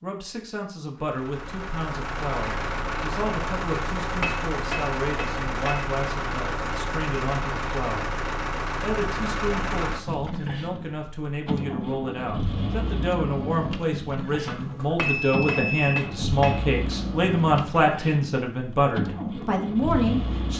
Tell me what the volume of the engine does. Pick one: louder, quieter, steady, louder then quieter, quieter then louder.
steady.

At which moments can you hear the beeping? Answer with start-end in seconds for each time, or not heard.
14.4-15.9.